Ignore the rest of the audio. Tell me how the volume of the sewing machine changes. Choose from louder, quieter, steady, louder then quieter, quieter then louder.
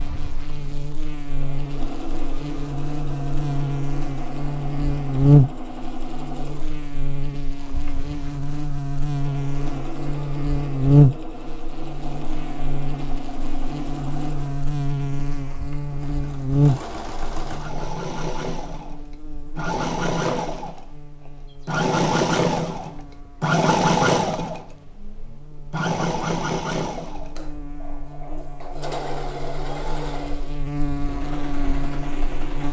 louder then quieter.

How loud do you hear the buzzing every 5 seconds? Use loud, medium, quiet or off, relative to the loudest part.
medium, loud, loud, loud, quiet, quiet, medium.